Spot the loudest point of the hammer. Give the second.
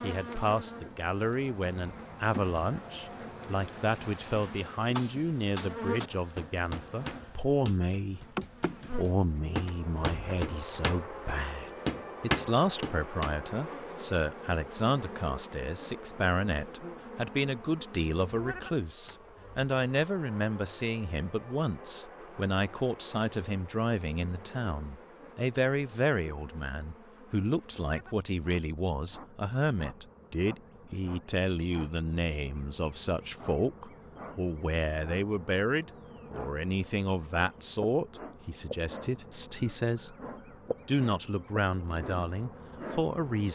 12 s.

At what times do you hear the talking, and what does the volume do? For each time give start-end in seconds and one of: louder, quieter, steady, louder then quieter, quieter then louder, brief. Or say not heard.
0.0-8.2 steady
8.9-40.1 steady
40.9-43.5 brief.